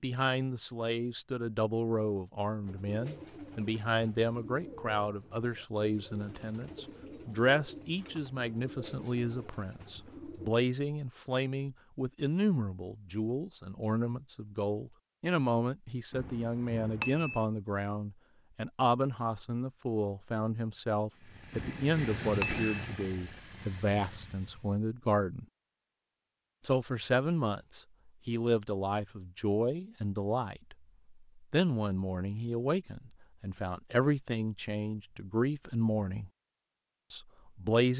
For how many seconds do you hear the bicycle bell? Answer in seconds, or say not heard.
3 s.